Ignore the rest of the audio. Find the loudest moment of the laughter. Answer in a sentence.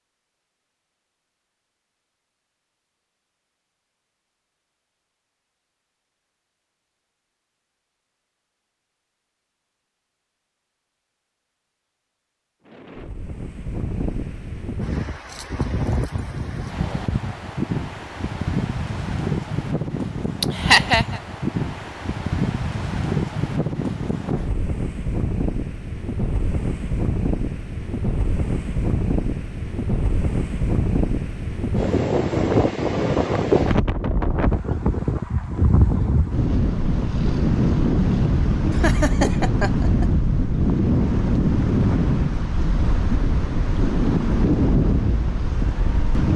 The loudest moment of the laughter is at 21 seconds.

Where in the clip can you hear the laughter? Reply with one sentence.
You can hear the laughter from 20.4 to 21.2 s and from 38.7 to 40.1 s.